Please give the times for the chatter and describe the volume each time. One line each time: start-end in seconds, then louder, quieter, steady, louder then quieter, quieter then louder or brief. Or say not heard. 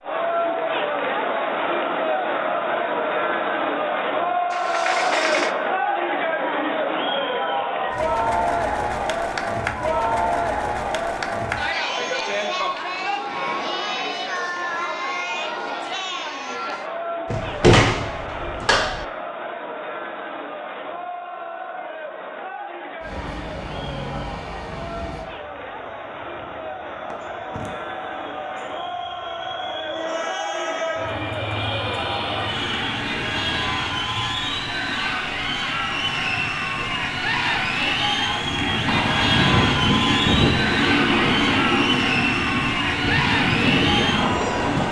0.0-44.8 quieter then louder.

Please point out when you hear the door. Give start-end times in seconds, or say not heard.
4.5-5.5, 17.3-19.1, 38.9-40.1.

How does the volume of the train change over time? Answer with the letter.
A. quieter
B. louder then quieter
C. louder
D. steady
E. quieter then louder
C.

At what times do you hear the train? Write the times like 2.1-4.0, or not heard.
23.0-44.8.